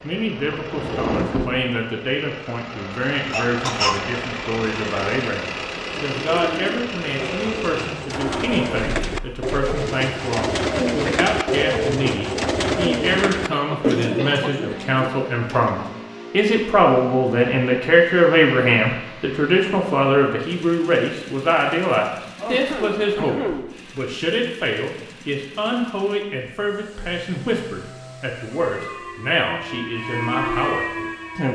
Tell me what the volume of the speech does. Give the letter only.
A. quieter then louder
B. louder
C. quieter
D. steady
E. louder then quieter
E.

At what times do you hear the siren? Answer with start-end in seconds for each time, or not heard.
28.0-31.5.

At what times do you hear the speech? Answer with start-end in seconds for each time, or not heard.
0.0-31.5.